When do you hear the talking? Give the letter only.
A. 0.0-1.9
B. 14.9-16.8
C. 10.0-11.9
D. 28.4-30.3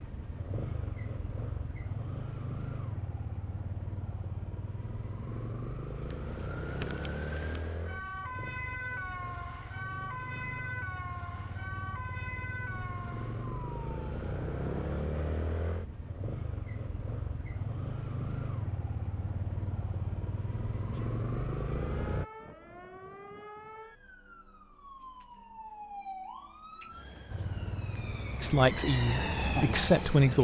D.